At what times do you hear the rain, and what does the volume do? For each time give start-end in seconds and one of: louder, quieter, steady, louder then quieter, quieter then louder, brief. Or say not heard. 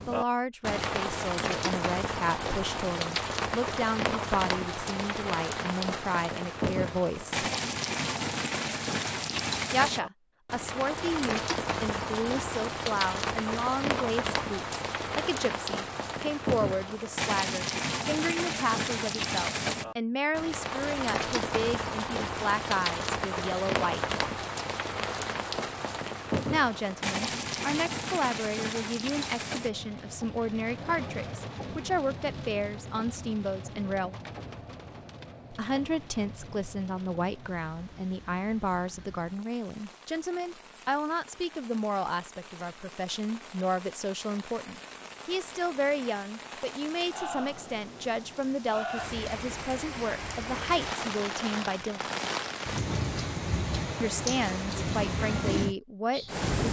0.0-56.6 quieter then louder.